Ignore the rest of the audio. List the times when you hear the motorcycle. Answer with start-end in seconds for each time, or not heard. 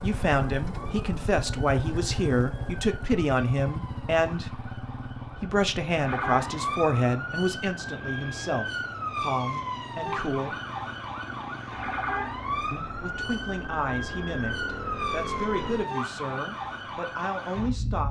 0.0-15.9.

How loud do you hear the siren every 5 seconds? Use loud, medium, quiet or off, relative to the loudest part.
quiet, loud, loud, loud.